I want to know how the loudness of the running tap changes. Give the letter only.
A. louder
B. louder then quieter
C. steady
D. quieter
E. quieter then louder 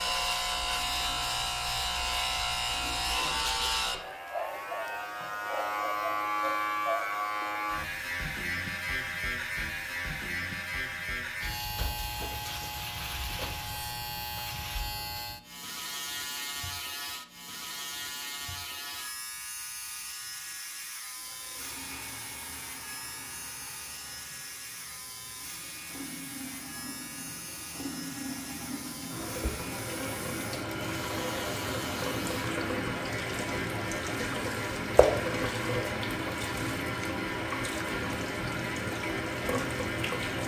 A.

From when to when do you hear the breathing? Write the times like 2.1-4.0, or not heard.
not heard.